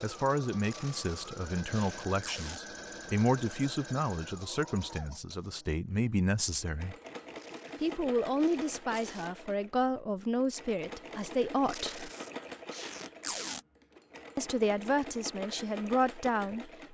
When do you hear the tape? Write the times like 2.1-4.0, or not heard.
0.7-2.6, 7.3-9.3, 11.7-13.6.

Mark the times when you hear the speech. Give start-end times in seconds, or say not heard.
0.0-7.0, 7.8-12.1, 14.3-16.7.